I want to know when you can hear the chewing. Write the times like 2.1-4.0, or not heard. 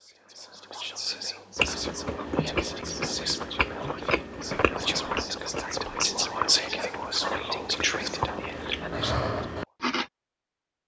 1.6-10.1.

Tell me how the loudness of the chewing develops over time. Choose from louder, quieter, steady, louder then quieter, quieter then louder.
quieter then louder.